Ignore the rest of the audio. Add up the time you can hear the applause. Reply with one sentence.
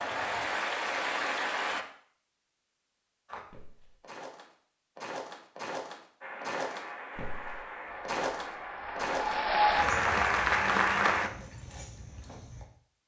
The applause can be heard for 7 seconds in total.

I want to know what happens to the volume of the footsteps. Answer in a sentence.
The volume of the footsteps goes up, then down.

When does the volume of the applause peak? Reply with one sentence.
The volume of the applause peaks at 10 seconds.